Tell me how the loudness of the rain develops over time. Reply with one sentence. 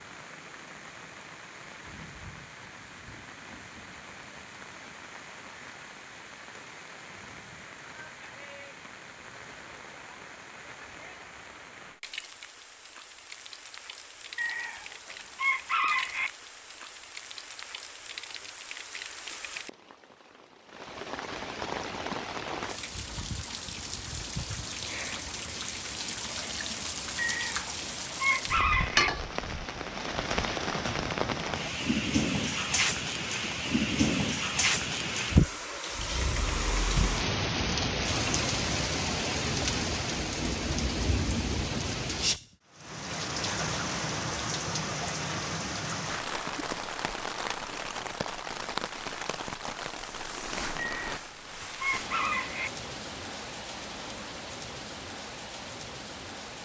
The loudness of the rain goes up, then down.